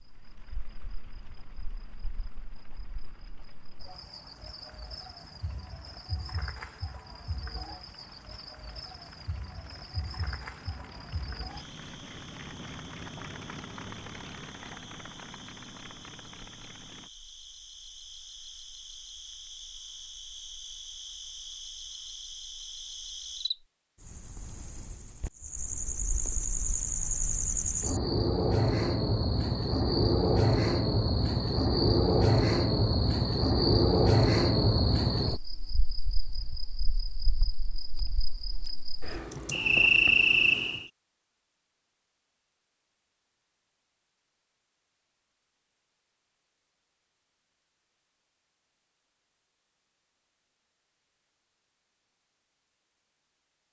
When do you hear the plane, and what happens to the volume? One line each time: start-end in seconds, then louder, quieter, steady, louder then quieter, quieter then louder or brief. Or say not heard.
0.0-17.1 louder.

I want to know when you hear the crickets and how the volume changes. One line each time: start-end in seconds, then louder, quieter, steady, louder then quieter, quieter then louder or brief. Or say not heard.
0.0-40.9 louder.